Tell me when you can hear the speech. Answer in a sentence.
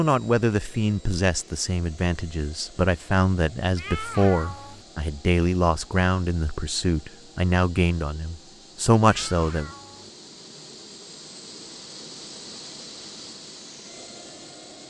The speech can be heard from 0.0 to 9.7 s.